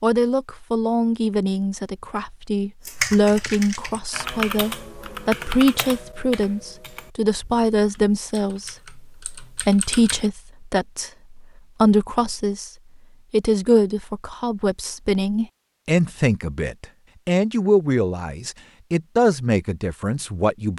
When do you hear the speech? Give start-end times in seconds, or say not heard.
0.0-12.7, 13.3-20.7.